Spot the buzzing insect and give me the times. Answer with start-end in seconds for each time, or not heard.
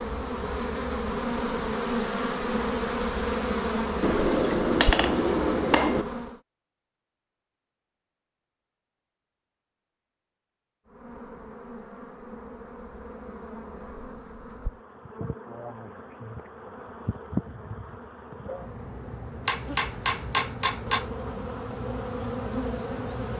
0.0-6.4, 10.8-23.3.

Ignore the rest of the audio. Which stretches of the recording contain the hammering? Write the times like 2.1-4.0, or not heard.
4.0-6.0, 19.4-21.1.